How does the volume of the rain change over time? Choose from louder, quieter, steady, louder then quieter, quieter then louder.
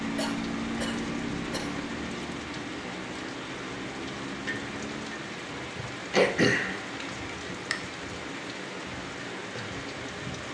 steady.